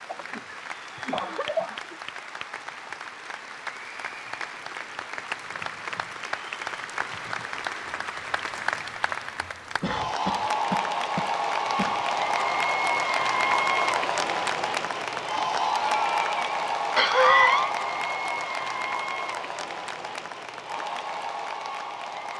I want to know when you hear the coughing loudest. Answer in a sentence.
The volume of the coughing peaks at 17 seconds.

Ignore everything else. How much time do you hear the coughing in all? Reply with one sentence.
The coughing can be heard for 6 seconds in total.